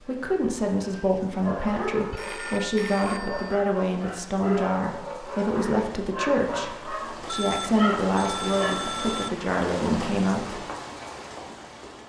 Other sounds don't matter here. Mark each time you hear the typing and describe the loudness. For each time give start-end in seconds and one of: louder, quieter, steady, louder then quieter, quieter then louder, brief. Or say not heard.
not heard.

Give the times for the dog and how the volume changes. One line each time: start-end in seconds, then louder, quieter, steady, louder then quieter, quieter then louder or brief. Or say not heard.
0.8-8.8 steady.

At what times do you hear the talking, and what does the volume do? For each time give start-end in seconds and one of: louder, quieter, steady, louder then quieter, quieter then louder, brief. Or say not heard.
0.0-10.6 steady.